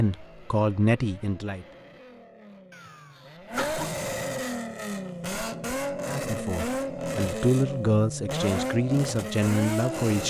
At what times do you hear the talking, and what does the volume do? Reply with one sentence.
You can hear the talking briefly from 0.0 to 1.6 s; and from 6.0 to 10.2 s, getting louder.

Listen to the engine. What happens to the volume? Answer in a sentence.
The volume of the engine goes up.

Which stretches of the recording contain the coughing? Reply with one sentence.
You can hear the coughing from 2.7 to 4.1 s.